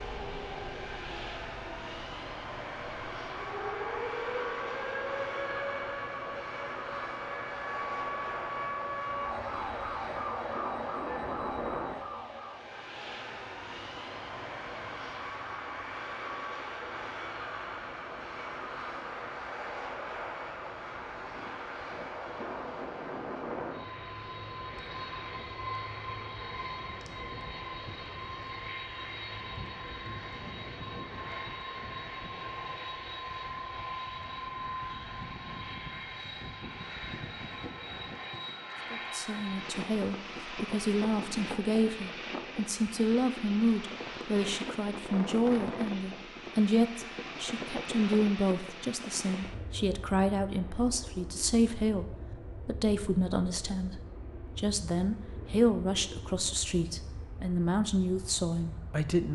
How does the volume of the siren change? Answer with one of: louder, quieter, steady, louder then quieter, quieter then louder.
louder.